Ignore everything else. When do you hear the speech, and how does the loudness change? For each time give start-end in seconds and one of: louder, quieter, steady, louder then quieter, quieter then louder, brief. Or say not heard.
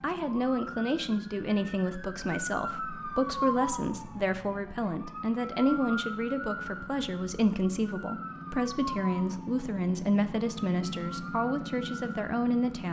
0.0-12.8 steady.